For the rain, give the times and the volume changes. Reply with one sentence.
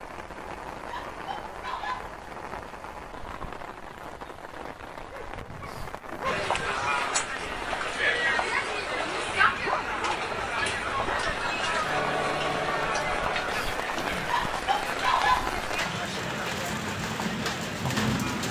You can hear the rain from 0.0 to 18.4 s, getting louder.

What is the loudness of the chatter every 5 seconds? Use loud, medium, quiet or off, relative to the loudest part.
off, loud, loud, medium.